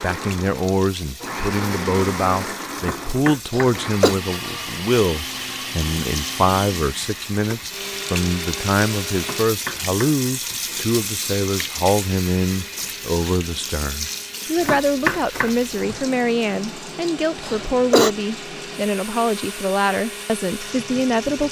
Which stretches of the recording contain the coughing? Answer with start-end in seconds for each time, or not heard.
3.5-4.2, 17.4-18.1.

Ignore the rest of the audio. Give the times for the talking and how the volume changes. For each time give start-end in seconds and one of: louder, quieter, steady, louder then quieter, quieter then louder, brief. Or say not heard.
0.0-21.4 steady.